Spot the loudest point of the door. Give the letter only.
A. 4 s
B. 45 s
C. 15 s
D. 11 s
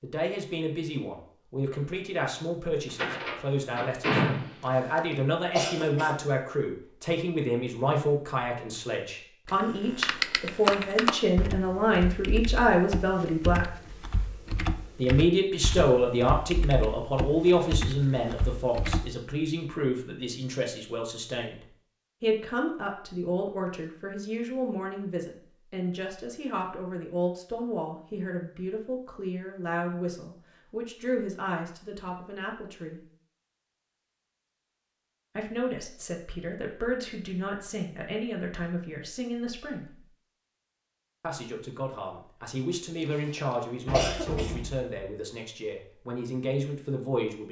A.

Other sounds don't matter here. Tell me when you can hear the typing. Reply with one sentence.
The typing can be heard from 9.4 to 19.1 s.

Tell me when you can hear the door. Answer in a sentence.
You can hear the door from 3.0 to 4.5 s and from 43.9 to 44.9 s.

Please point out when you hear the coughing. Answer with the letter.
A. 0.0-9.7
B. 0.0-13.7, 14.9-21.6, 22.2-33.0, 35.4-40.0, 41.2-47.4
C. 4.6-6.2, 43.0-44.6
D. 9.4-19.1
C.